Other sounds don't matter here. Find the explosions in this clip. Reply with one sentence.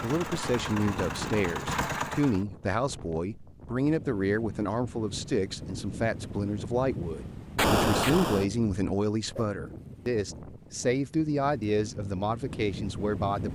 You can hear the explosions from 7.5 to 8.4 s.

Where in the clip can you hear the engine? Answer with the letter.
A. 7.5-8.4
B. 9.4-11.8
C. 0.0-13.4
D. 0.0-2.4
D.